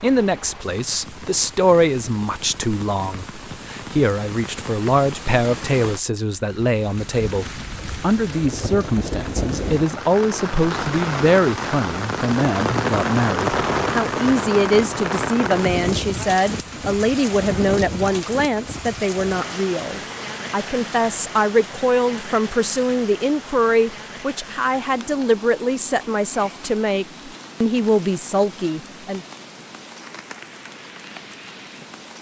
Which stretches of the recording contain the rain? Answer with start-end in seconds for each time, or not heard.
0.0-32.1.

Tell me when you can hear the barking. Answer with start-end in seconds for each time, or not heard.
not heard.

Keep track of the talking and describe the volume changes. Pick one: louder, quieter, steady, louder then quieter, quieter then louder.
steady.